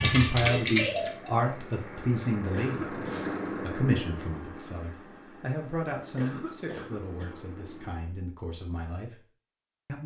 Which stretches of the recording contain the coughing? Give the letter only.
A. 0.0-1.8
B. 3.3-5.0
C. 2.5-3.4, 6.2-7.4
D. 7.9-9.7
C.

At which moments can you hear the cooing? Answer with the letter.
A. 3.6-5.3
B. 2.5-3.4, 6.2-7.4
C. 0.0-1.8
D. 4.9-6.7
C.